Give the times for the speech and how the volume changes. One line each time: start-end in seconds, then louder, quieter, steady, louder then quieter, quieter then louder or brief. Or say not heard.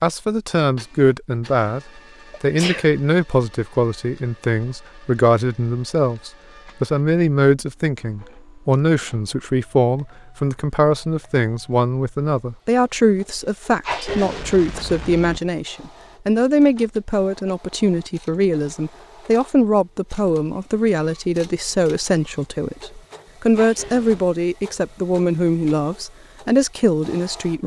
0.0-1.8 brief
2.4-27.6 steady.